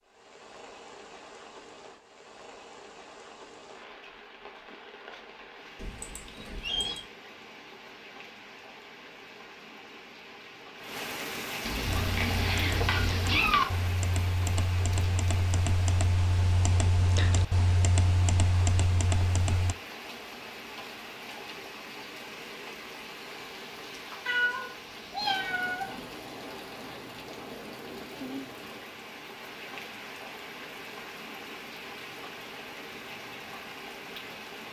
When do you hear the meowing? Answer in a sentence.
You can hear the meowing from 5.8 to 7.0 s, from 11.6 to 13.7 s and from 24.2 to 26.1 s.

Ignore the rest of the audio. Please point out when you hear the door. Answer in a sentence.
You can't hear the door here.